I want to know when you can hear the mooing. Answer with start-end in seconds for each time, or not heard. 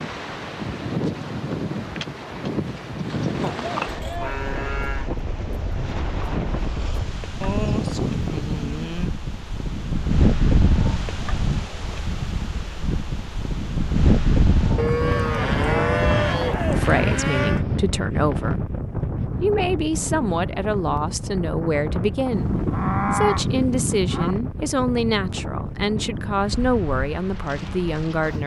3.4-5.1, 7.4-9.1, 14.8-17.6, 22.3-24.4.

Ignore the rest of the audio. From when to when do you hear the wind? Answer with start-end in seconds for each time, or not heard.
0.0-28.4.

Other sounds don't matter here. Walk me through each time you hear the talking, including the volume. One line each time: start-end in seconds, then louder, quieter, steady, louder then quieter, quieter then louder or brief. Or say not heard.
16.6-28.4 steady.